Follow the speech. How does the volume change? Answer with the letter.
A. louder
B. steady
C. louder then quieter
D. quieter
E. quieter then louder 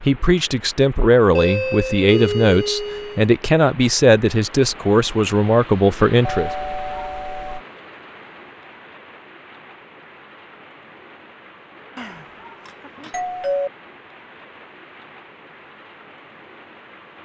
B.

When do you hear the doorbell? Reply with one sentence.
The doorbell can be heard from 1.4 to 3.3 s, from 6.2 to 7.6 s and from 11.9 to 13.7 s.